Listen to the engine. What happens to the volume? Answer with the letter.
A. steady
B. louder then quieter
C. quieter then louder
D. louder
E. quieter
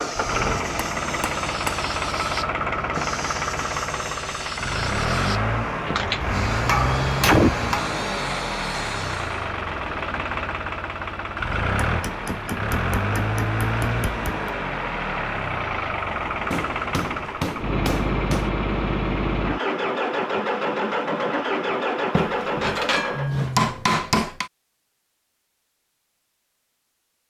A.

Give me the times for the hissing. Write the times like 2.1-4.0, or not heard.
0.0-9.5.